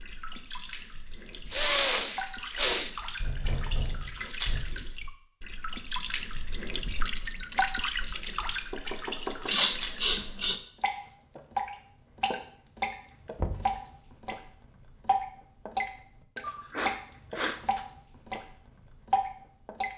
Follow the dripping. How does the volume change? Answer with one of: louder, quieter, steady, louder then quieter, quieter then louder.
louder.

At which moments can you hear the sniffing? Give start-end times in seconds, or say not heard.
1.5-2.9, 9.4-10.6, 16.4-17.8.